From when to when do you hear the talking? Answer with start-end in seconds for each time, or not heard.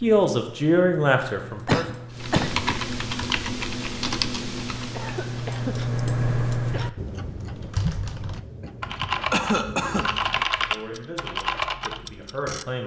0.0-1.9, 10.6-12.8.